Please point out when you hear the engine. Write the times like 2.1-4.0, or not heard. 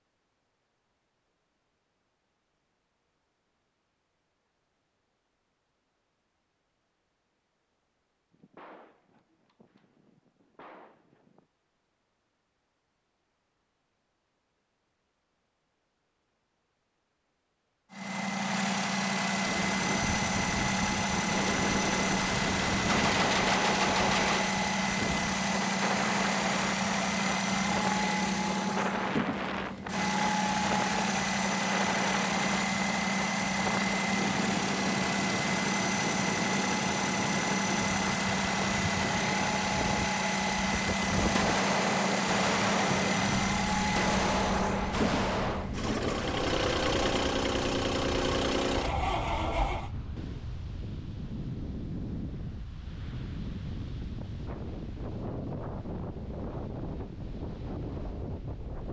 17.9-49.9.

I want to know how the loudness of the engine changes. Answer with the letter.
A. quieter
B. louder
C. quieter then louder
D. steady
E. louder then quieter
D.